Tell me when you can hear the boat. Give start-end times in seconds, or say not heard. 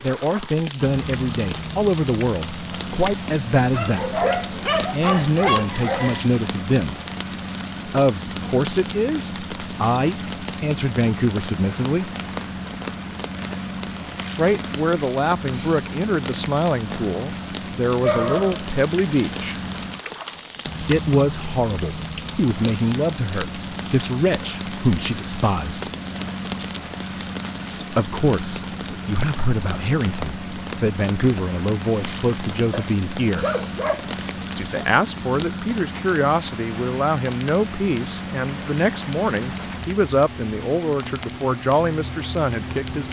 0.0-43.0.